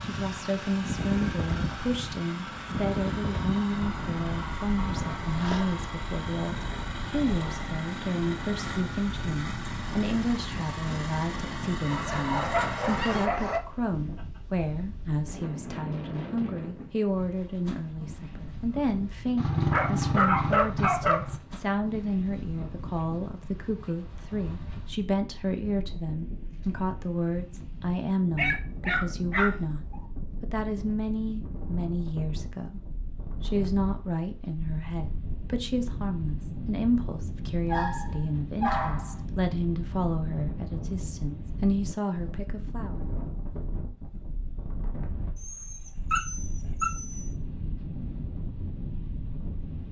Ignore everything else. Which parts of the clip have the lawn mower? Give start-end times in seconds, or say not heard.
0.0-13.3.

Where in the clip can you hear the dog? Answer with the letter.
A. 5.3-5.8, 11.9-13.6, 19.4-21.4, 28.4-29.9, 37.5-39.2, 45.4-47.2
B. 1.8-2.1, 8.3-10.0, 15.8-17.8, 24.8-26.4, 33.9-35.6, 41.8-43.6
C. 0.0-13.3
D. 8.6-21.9
A.